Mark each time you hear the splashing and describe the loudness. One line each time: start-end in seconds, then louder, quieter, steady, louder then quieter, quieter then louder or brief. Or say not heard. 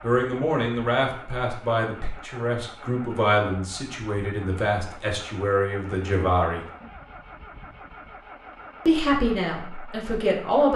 not heard.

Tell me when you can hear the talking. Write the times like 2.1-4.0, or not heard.
0.0-6.7, 8.8-10.7.